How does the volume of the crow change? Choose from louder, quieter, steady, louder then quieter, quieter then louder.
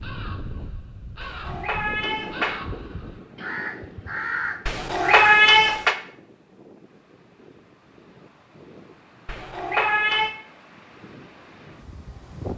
louder.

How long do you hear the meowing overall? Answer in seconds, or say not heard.
4 s.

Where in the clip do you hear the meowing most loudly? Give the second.
5 s.